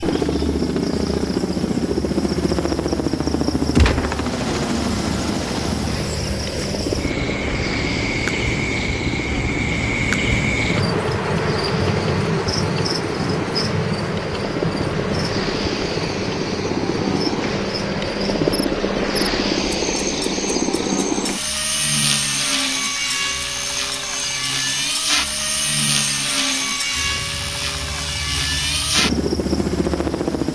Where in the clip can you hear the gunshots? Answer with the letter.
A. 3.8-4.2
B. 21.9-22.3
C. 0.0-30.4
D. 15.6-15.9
A.